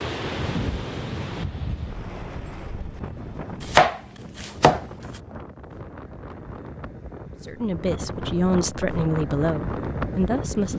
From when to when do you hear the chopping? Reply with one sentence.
You can hear the chopping from 3.6 to 4.8 s.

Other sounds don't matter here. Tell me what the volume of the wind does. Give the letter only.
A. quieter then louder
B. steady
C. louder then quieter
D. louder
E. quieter
A.